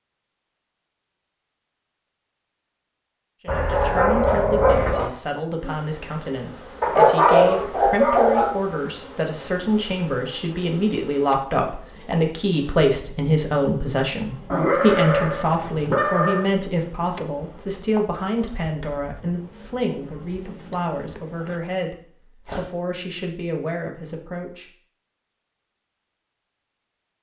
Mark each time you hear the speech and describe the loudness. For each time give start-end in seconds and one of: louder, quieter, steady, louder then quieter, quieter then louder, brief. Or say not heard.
3.4-24.6 louder then quieter.